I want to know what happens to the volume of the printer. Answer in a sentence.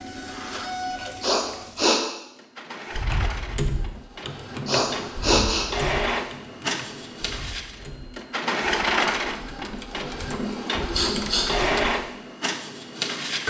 The loudness of the printer goes up.